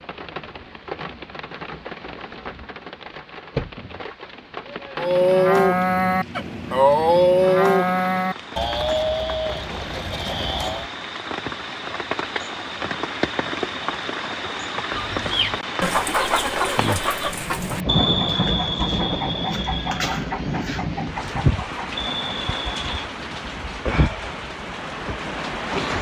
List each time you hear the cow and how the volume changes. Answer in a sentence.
The cow can be heard from 5.0 to 10.9 s, getting quieter.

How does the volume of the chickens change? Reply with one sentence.
The volume of the chickens goes down.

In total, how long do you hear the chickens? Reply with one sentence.
The chickens can be heard for 8 seconds in total.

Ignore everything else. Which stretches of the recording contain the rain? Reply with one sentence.
You can hear the rain from 0.0 to 25.9 s.